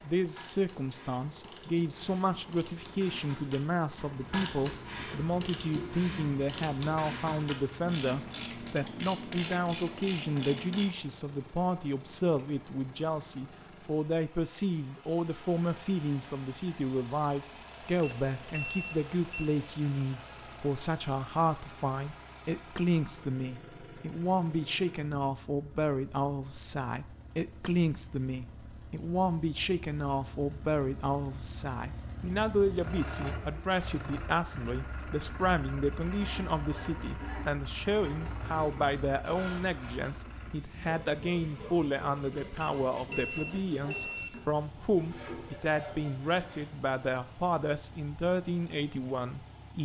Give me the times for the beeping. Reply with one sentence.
The beeping can be heard from 17.9 to 19.5 s and from 42.5 to 44.3 s.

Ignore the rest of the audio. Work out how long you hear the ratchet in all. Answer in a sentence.
You can hear the ratchet for 11 seconds altogether.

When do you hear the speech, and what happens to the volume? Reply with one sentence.
The speech can be heard from 0.0 to 49.7 s, at a steady volume.